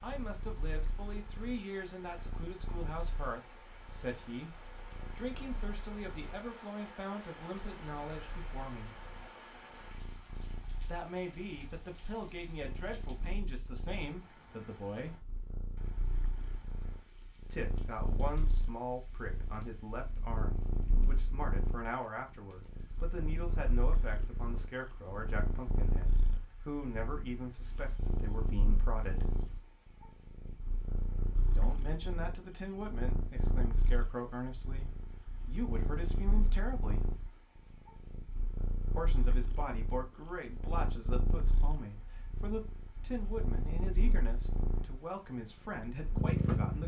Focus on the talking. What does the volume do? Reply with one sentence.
The loudness of the talking stays about the same.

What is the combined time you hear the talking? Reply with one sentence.
You can hear the talking for 39 seconds altogether.